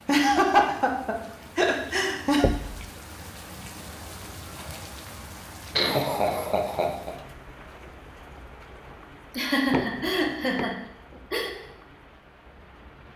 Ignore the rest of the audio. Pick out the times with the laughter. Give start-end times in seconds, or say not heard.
0.1-2.5, 5.8-7.2, 9.3-11.5.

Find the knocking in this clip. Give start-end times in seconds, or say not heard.
2.4-2.9, 9.7-10.7.